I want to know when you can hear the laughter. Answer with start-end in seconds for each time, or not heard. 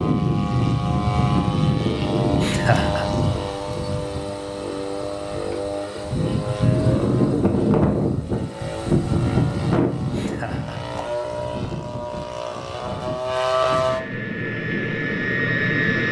2.4-3.1, 10.1-10.8.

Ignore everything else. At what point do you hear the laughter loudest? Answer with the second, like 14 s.
3 s.